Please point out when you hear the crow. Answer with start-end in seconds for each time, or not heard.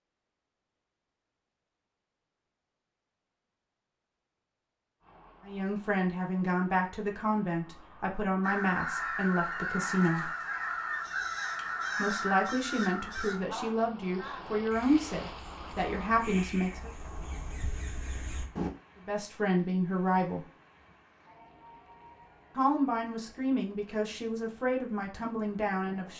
8.4-18.7.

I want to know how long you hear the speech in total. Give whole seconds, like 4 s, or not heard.
15 s.